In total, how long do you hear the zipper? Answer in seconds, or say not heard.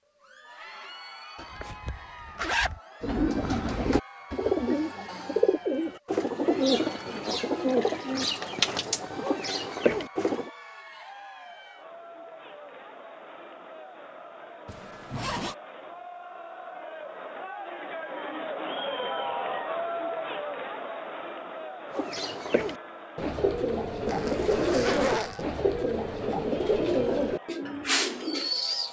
4 s.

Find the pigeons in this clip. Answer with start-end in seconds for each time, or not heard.
3.0-10.5, 21.9-28.8.